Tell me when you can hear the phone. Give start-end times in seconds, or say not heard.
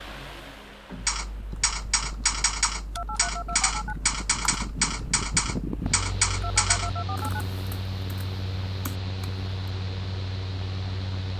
3.0-4.0, 6.4-7.5.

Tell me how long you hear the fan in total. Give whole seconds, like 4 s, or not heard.
11 s.